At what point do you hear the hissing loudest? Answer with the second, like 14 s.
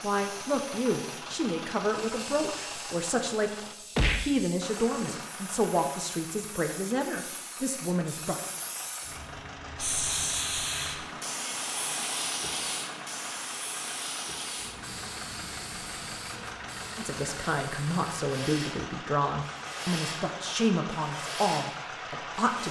10 s.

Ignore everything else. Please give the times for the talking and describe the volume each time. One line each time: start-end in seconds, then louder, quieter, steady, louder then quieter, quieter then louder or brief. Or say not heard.
0.0-8.4 steady
16.9-22.6 steady.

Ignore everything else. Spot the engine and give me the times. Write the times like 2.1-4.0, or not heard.
0.0-22.6.